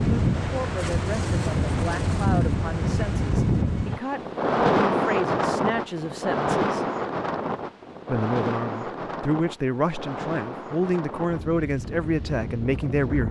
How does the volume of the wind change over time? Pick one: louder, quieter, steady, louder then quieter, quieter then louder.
quieter.